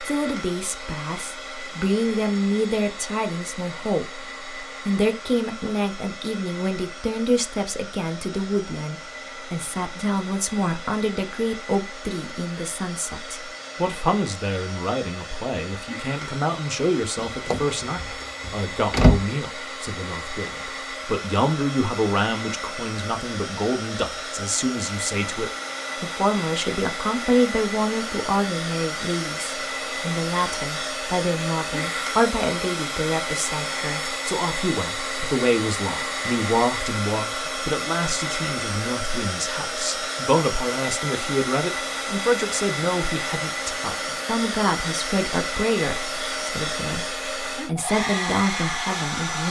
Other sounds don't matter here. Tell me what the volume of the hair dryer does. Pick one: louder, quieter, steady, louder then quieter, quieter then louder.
louder.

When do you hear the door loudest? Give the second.
19 s.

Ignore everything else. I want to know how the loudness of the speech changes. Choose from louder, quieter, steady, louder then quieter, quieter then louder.
steady.